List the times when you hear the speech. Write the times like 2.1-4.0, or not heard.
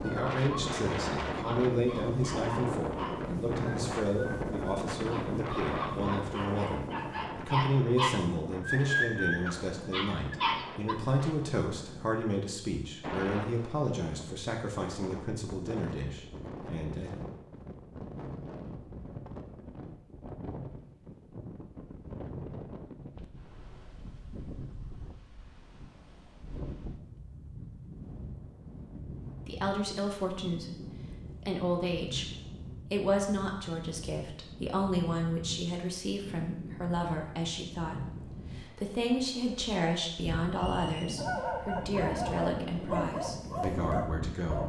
0.0-17.1, 29.4-44.6.